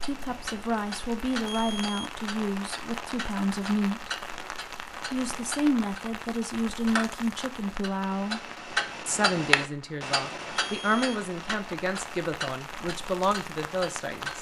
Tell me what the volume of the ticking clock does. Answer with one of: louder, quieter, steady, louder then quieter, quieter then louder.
louder then quieter.